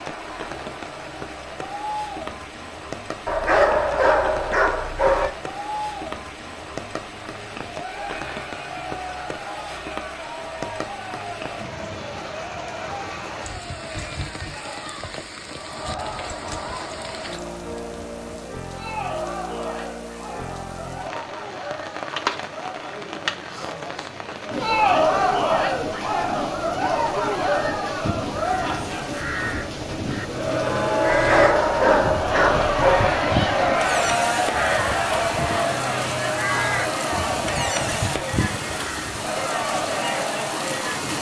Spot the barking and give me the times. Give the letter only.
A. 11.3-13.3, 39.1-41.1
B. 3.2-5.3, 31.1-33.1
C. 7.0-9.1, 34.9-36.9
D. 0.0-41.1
B.